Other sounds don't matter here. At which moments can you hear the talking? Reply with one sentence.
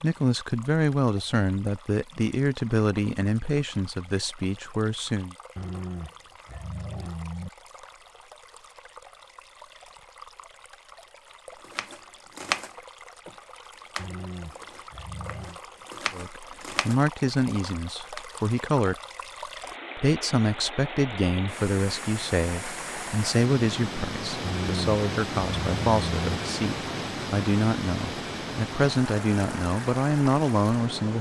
The talking can be heard from 0.0 to 5.3 s, from 16.1 to 18.9 s and from 19.9 to 31.1 s.